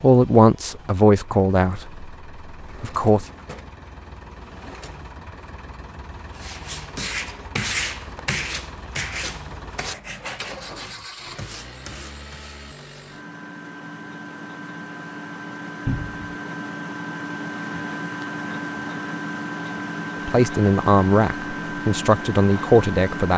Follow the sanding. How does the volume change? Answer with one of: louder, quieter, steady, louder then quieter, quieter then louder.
quieter.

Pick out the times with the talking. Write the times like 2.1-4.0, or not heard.
0.0-3.2, 20.2-23.3.